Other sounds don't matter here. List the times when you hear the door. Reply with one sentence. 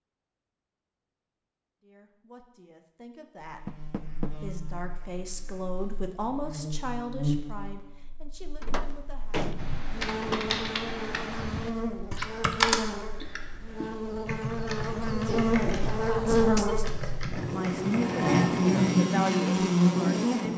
You can hear the door from 3.6 to 4.3 s, from 8.6 to 10.5 s and from 15.2 to 16.6 s.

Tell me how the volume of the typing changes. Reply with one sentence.
The volume of the typing goes up, then down.